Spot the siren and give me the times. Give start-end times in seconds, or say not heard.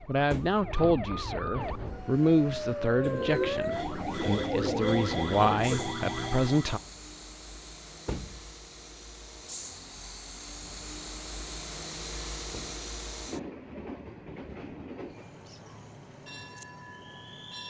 0.0-6.8.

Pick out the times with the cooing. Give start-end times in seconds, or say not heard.
3.0-6.0.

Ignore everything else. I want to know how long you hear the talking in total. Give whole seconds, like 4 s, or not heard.
7 s.